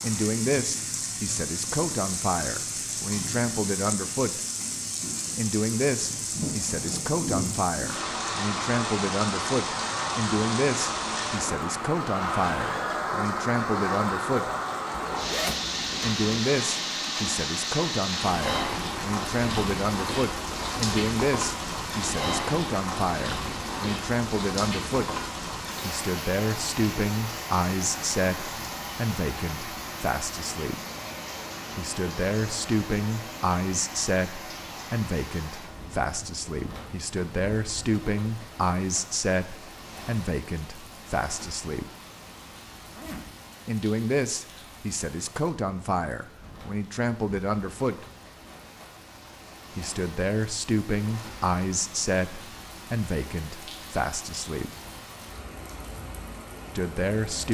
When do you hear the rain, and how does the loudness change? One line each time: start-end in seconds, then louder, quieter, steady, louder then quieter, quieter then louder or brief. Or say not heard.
0.0-57.4 quieter.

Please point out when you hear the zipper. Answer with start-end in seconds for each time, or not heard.
14.9-16.2, 42.8-43.4.